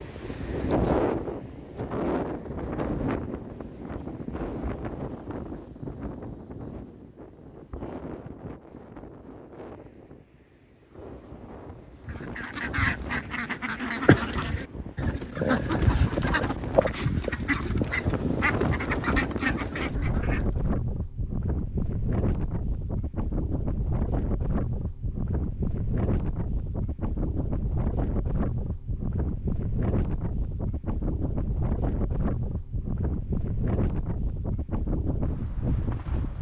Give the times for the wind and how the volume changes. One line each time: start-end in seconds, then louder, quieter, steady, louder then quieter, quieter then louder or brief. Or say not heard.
0.0-36.3 quieter then louder.